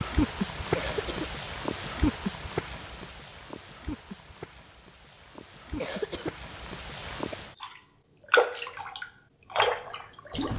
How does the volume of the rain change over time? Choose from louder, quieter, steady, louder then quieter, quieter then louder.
quieter then louder.